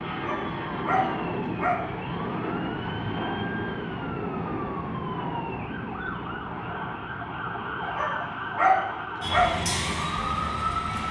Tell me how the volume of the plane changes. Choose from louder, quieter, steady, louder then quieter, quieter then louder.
quieter.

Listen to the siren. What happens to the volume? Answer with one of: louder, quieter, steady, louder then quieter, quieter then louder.
louder.